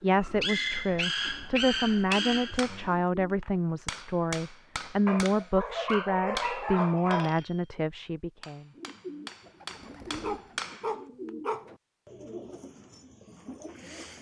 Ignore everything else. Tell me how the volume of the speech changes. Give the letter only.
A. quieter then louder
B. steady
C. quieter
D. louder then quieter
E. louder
B.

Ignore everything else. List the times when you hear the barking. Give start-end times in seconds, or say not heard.
0.2-2.9, 5.0-7.3, 10.2-11.7.